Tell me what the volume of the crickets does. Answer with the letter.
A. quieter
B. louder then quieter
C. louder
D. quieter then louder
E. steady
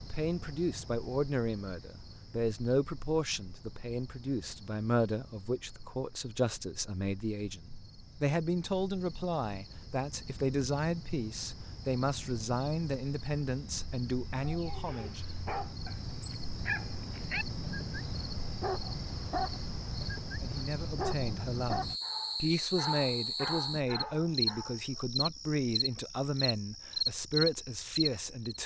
C.